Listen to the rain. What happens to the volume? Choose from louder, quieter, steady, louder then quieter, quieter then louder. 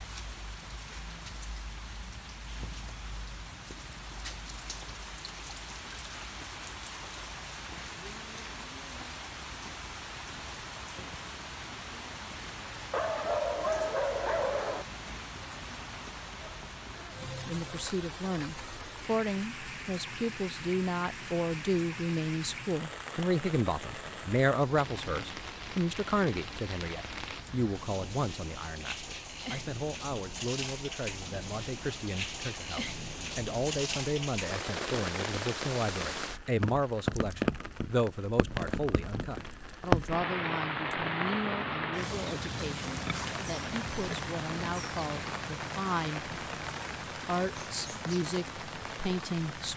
louder.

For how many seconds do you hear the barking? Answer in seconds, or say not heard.
2 s.